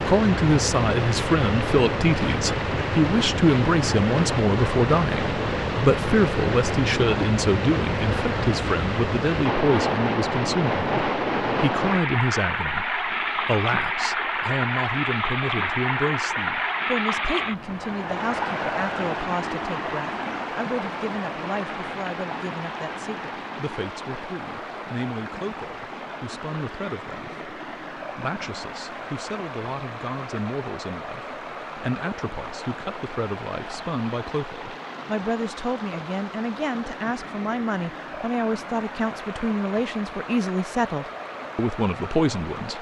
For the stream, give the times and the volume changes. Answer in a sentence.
You can hear the stream from 0.0 to 42.7 s, getting quieter.